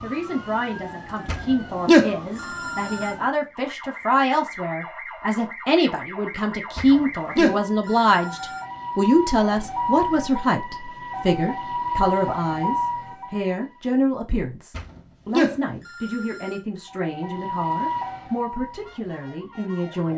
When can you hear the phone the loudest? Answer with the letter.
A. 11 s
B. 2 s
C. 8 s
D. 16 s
B.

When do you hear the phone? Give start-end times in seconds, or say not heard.
1.2-3.1, 6.8-8.6, 14.8-16.6.